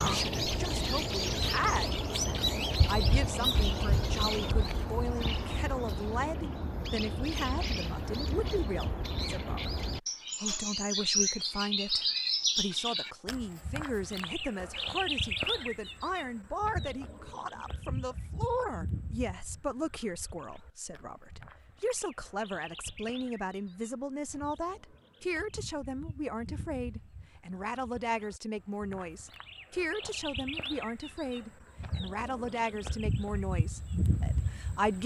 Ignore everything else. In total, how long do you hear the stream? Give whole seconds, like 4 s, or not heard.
not heard.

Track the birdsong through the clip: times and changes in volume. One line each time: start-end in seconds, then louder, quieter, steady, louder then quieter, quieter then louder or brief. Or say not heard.
0.0-35.0 quieter then louder.